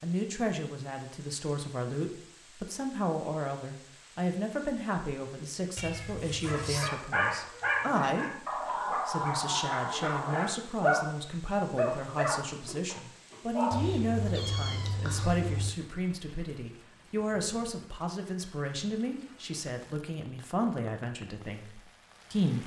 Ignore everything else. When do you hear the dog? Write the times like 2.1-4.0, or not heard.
6.5-13.9.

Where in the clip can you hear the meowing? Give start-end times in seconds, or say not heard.
5.8-6.9, 13.7-15.7.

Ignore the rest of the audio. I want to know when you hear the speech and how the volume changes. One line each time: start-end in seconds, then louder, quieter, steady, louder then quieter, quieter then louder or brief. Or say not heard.
0.0-22.6 steady.